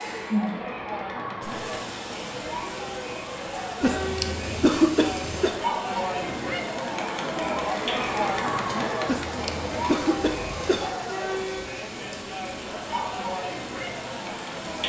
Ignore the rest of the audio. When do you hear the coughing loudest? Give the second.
5 s.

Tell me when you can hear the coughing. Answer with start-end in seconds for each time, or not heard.
3.8-5.5, 9.1-10.9.